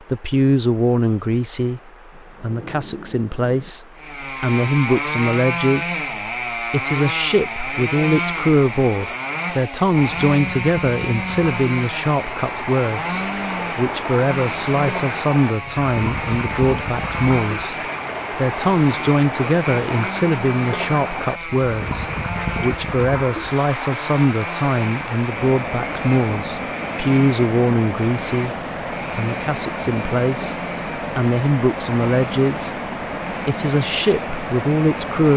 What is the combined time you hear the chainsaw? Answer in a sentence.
You can hear the chainsaw for 31 seconds altogether.